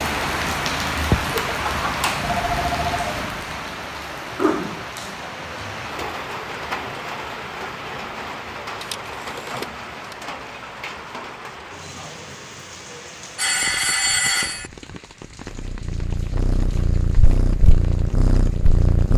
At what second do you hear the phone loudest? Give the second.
14 s.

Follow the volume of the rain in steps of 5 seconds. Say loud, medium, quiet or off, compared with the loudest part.
loud, medium, medium, quiet.